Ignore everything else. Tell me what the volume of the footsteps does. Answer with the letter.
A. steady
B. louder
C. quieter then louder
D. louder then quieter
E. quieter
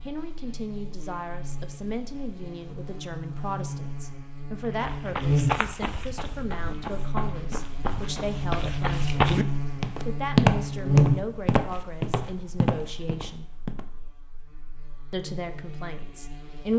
D.